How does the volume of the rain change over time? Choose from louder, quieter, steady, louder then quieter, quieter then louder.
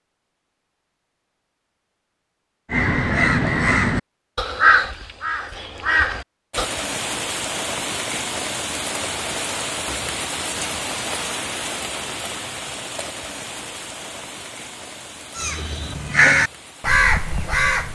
quieter.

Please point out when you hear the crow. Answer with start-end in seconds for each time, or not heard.
2.7-6.7, 15.3-17.9.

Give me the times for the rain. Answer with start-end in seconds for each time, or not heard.
6.5-17.9.